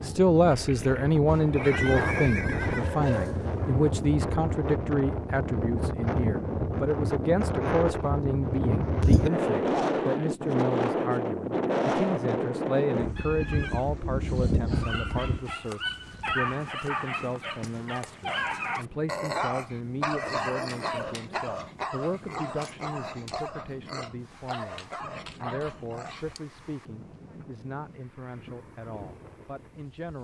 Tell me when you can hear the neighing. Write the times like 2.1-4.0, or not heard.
0.5-2.9, 13.2-13.8, 20.1-21.4.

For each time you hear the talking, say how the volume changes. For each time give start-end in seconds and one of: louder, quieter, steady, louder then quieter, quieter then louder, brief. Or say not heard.
0.0-30.1 quieter.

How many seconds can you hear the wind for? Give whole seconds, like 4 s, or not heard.
30 s.